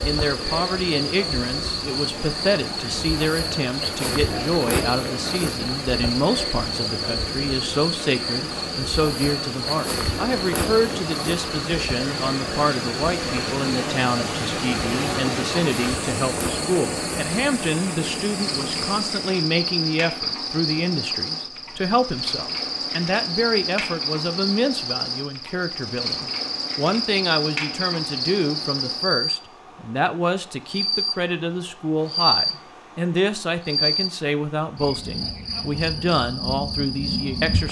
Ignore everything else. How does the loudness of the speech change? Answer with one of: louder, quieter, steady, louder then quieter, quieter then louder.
steady.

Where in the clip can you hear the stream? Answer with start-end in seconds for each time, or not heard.
0.0-19.4.